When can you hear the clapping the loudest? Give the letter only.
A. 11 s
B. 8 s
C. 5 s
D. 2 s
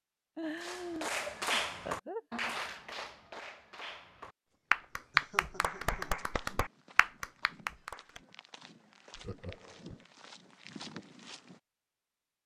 C.